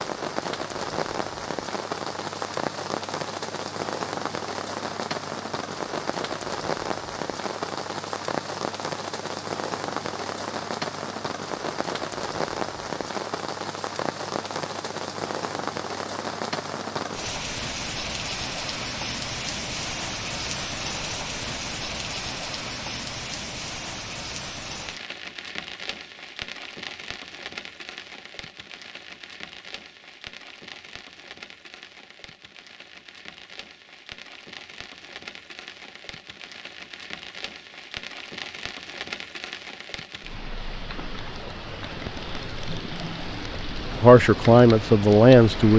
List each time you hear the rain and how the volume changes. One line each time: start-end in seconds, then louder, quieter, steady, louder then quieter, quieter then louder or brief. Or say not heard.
0.0-45.7 quieter then louder.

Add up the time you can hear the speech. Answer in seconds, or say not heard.
2 s.